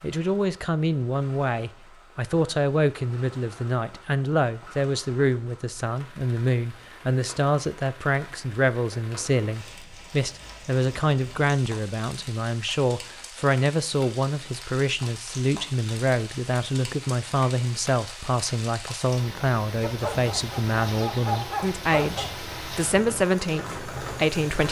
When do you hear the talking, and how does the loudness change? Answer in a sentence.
The talking can be heard from 0.0 to 24.6 s, at a steady volume.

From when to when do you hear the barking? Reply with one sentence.
The barking can be heard from 19.8 to 22.4 s.